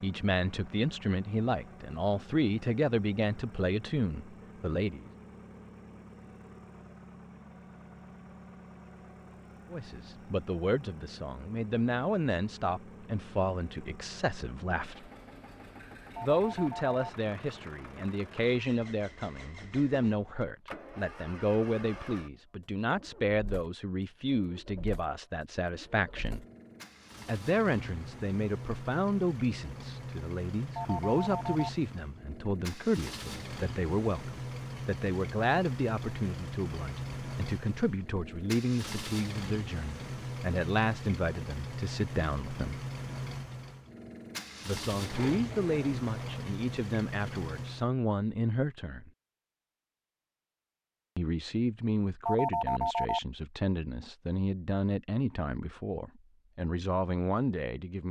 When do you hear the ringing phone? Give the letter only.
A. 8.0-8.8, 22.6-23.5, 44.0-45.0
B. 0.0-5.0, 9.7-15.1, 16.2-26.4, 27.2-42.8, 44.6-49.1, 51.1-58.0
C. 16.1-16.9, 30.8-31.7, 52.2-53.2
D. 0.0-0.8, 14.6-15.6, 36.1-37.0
C.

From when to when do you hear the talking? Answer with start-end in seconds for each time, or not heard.
0.0-5.0, 9.7-15.1, 16.2-26.4, 27.2-42.8, 44.6-49.1, 51.1-58.0.